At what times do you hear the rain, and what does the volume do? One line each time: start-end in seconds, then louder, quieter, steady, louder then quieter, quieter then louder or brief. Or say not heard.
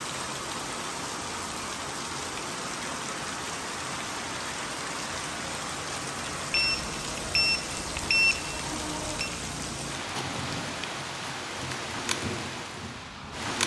0.0-13.6 steady.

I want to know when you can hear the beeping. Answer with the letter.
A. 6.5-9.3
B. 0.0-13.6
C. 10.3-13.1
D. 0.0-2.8
A.